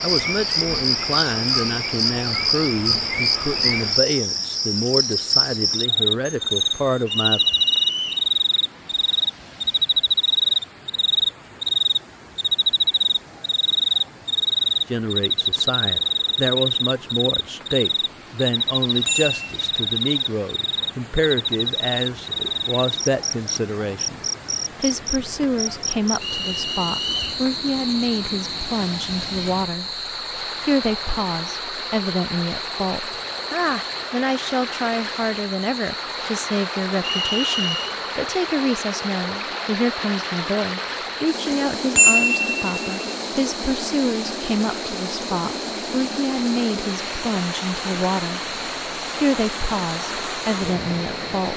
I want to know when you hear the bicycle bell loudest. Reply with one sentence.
The volume of the bicycle bell peaks at 42 seconds.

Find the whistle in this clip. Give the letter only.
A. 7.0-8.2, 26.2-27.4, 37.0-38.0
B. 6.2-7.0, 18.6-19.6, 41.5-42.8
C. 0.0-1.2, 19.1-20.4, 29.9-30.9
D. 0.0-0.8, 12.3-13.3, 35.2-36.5
A.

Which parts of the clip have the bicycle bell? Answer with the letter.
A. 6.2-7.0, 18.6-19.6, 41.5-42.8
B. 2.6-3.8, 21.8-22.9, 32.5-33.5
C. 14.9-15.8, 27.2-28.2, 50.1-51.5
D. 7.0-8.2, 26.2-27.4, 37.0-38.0
A.